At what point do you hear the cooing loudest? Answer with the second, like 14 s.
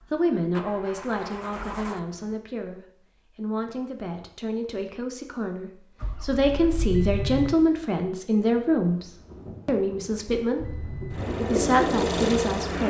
12 s.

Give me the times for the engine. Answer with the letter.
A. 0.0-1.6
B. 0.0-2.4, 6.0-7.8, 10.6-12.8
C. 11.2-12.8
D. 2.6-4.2
B.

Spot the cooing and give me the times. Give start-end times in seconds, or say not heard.
11.2-12.8.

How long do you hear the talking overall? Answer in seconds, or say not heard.
12 s.